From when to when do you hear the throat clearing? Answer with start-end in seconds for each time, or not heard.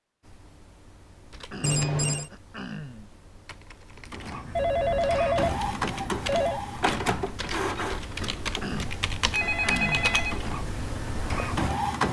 1.4-3.1, 8.5-10.2.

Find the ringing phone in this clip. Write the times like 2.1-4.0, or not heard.
1.6-2.3, 4.5-6.6, 9.3-10.4.